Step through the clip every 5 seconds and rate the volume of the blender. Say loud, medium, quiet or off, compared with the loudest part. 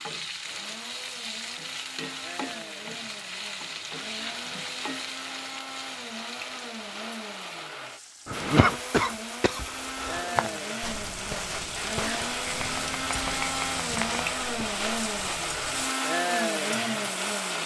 quiet, medium, loud, loud.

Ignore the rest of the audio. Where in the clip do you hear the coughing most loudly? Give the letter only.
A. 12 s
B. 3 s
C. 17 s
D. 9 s
D.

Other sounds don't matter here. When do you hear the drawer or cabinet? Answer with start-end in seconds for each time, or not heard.
not heard.